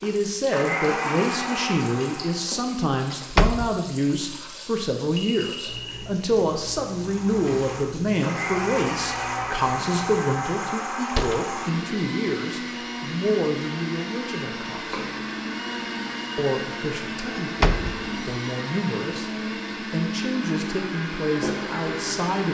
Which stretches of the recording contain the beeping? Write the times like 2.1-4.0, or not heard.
5.2-6.1.